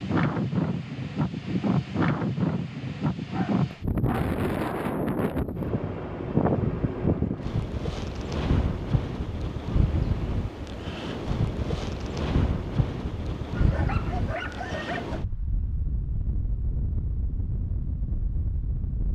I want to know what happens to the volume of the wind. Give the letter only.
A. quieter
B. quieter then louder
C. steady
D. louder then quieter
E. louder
A.